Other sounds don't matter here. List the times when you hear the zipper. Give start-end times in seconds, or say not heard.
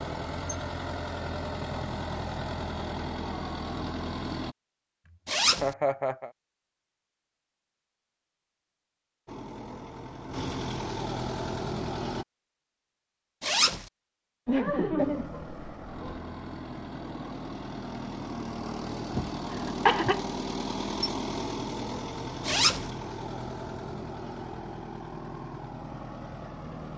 5.2-5.7, 13.4-13.8, 22.4-22.9.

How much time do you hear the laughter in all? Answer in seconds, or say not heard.
4 s.